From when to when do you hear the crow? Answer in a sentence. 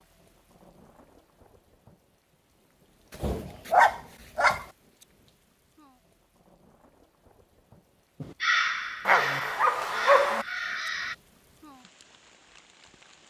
The crow can be heard from 8.2 to 11.2 s.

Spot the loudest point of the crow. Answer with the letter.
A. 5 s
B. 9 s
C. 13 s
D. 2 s
B.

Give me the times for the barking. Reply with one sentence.
You can hear the barking from 3.2 to 4.7 s and from 9.1 to 10.4 s.